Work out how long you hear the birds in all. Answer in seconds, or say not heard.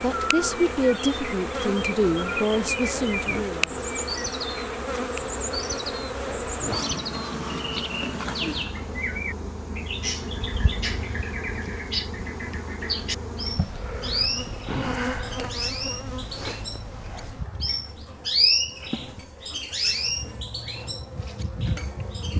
22 s.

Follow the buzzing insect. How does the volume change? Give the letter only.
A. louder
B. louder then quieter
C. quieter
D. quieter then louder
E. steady
C.